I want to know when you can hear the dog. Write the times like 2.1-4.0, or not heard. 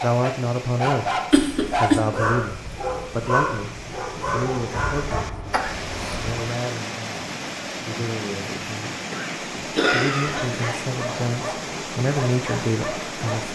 0.0-5.2, 10.4-13.5.